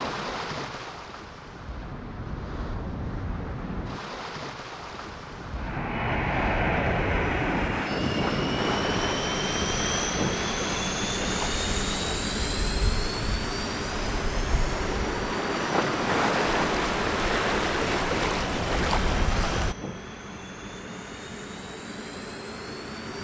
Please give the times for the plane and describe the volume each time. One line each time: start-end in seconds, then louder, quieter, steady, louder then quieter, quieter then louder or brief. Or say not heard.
5.5-23.1 quieter.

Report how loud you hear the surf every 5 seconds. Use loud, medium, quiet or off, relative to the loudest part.
medium, medium, medium, loud, off.